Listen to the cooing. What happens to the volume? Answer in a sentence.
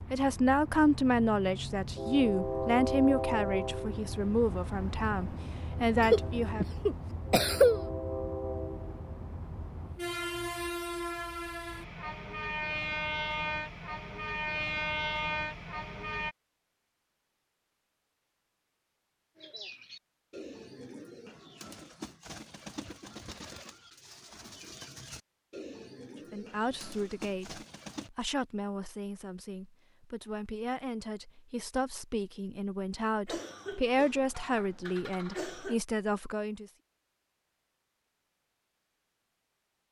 The loudness of the cooing stays about the same.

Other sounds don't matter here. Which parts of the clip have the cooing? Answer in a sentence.
The cooing can be heard from 19.4 to 28.1 s.